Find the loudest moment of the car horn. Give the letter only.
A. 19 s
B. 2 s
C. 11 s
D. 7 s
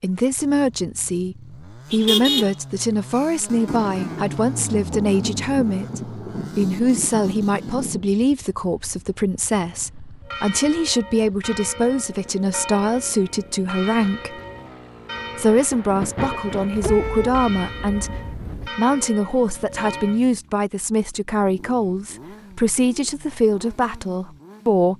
B.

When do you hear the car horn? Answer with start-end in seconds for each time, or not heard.
1.9-2.5, 16.7-18.7.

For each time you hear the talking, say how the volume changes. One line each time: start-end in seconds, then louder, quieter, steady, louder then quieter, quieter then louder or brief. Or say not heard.
0.0-14.3 steady
15.3-24.9 steady.